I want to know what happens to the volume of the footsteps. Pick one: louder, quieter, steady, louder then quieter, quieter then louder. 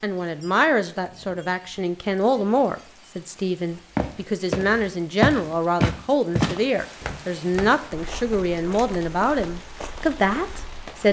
quieter.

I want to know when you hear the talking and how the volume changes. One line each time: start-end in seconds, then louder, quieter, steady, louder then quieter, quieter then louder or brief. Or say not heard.
0.0-11.0 steady.